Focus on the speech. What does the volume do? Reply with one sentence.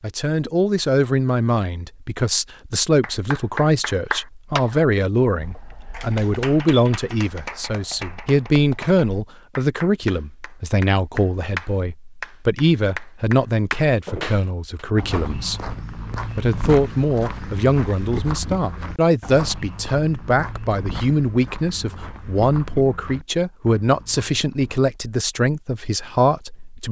The loudness of the speech stays about the same.